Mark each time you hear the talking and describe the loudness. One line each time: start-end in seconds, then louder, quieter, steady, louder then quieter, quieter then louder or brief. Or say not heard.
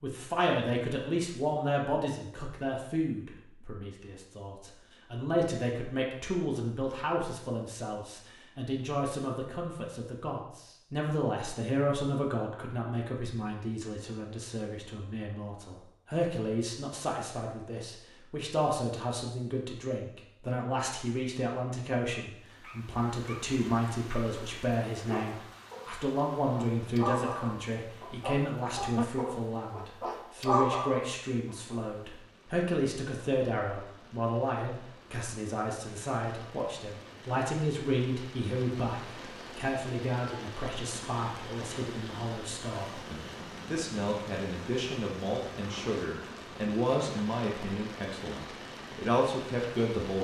0.0-50.1 steady.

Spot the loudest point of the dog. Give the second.
31 s.